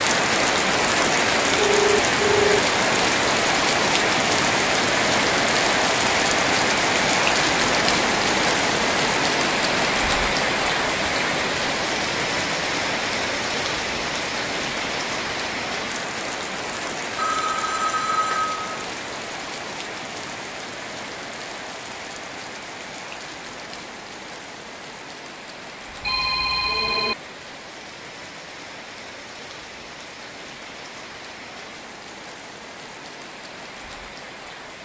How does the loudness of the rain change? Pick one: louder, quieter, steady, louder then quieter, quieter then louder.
quieter.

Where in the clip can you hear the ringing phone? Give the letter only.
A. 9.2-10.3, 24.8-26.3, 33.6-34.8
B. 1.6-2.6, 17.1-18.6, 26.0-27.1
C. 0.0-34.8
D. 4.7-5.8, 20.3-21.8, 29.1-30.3
B.